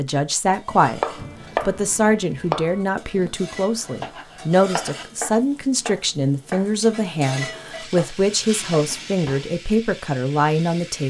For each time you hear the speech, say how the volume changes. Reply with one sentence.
You can hear the speech briefly from 0.0 to 1.0 s; and from 1.6 to 11.0 s, at a steady volume.